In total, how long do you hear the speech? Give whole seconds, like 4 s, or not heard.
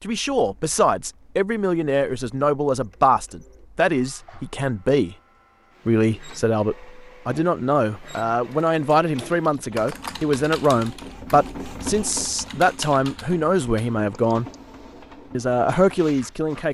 15 s.